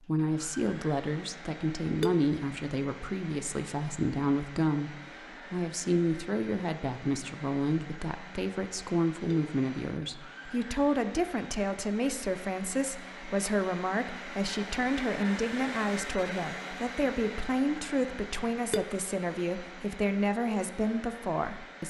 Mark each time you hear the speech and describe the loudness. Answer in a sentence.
The speech can be heard from 0.1 to 21.8 s, at a steady volume.